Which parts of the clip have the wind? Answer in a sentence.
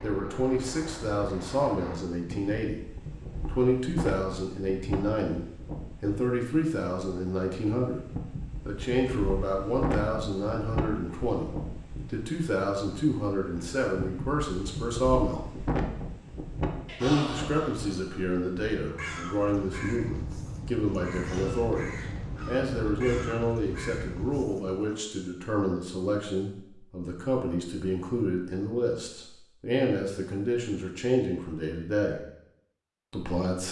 The wind can be heard from 0.0 to 24.4 s.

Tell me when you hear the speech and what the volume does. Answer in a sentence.
You can hear the speech from 0.0 to 15.4 s, at a steady volume; from 17.0 to 32.2 s, at a steady volume; and briefly from 33.1 to 33.6 s.